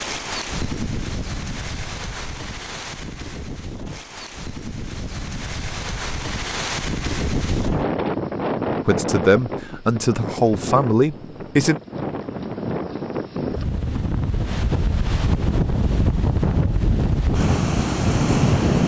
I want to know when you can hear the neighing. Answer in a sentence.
You can't hear the neighing here.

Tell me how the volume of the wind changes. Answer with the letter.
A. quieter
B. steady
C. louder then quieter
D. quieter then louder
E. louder
E.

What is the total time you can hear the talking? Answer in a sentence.
You can hear the talking for 3 seconds altogether.